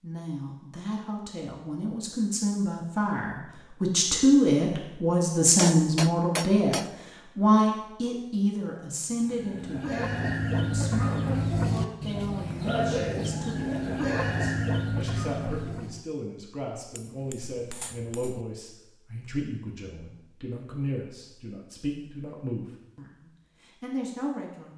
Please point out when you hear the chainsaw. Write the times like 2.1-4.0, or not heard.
not heard.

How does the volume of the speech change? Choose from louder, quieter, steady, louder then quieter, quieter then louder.
quieter.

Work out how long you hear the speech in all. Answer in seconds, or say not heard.
25 s.